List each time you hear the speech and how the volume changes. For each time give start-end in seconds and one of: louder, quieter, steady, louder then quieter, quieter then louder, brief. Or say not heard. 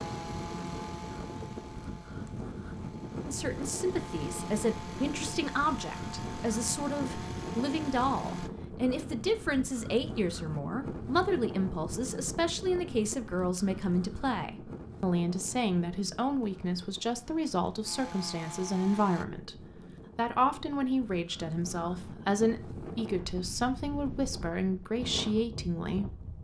3.2-26.2 steady.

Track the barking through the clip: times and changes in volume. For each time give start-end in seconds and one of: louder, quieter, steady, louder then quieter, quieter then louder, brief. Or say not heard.
not heard.